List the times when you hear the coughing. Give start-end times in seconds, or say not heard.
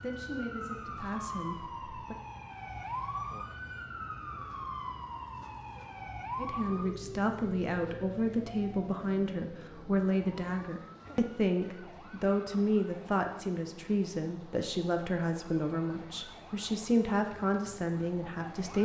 not heard.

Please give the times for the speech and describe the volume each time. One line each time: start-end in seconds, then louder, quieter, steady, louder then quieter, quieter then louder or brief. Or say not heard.
0.0-2.1 brief
6.3-18.8 steady.